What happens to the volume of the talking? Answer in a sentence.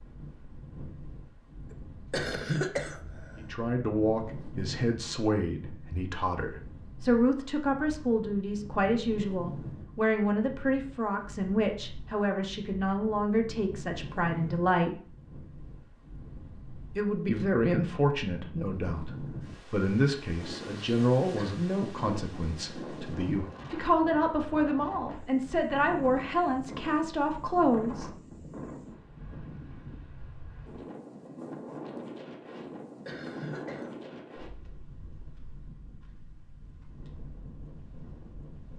The loudness of the talking stays about the same.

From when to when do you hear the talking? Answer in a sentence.
You can hear the talking from 3.4 to 14.9 s and from 16.9 to 28.1 s.